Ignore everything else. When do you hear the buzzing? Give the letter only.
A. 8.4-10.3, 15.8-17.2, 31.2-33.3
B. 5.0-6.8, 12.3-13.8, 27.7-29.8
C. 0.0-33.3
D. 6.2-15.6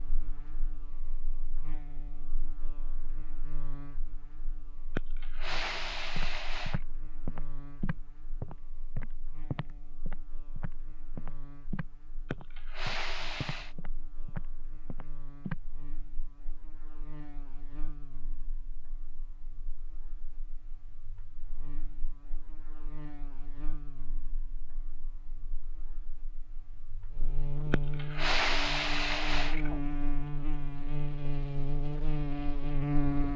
C.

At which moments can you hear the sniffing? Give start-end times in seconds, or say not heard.
5.0-6.8, 12.3-13.8, 27.7-29.8.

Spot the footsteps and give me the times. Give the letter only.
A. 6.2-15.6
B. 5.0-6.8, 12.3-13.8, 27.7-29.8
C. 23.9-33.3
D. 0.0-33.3
A.